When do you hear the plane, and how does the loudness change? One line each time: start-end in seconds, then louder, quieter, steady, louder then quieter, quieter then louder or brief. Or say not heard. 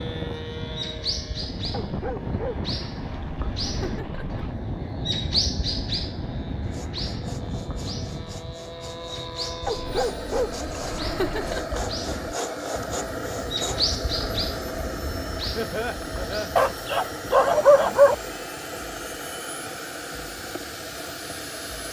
0.0-21.8 steady.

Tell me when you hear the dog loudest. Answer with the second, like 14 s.
18 s.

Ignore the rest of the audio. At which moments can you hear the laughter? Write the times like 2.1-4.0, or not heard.
3.6-4.2, 11.0-11.8, 15.6-16.6.